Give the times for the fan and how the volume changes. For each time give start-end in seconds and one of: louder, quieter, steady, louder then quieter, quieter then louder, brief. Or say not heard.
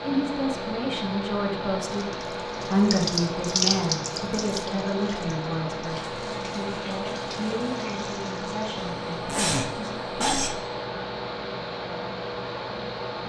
0.0-13.2 steady.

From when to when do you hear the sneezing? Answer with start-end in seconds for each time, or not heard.
8.9-10.6.